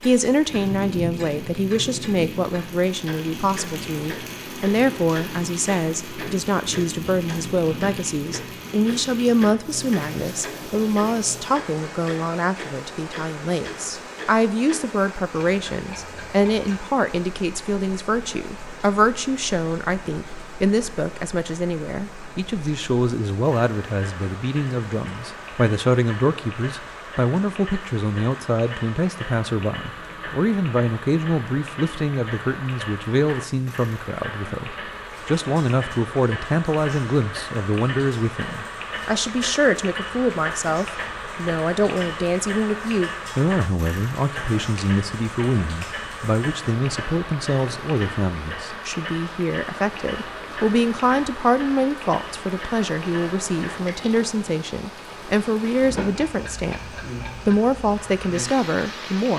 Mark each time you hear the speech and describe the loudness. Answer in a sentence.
You can hear the speech from 0.0 to 59.3 s, at a steady volume.